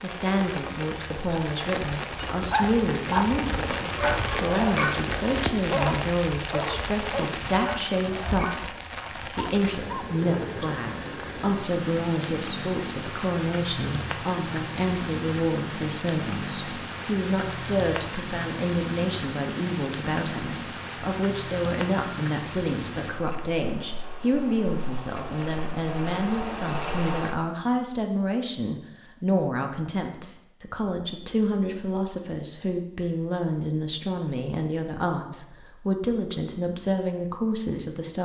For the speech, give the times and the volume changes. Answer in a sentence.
You can hear the speech from 0.0 to 38.2 s, at a steady volume.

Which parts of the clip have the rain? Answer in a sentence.
The rain can be heard from 0.0 to 27.4 s.